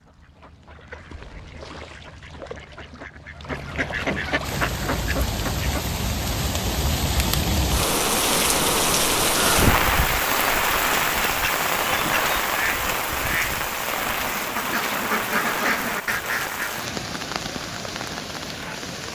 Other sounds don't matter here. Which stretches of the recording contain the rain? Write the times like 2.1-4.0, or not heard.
4.4-19.0.